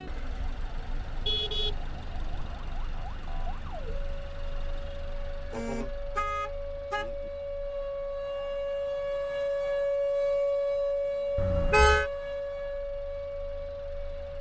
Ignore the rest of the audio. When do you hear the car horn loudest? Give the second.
12 s.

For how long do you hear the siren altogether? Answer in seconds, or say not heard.
14 s.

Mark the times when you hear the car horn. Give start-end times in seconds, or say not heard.
1.1-2.2, 5.5-7.3, 11.3-12.1.